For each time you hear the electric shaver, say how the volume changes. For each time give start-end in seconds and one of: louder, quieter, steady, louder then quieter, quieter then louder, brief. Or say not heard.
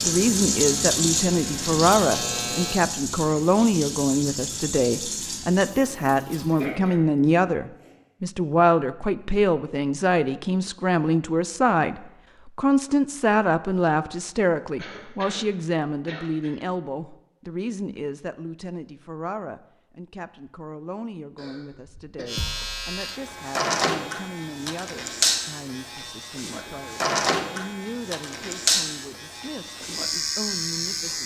0.0-2.8 brief
22.2-31.2 steady.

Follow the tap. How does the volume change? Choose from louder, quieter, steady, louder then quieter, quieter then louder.
quieter.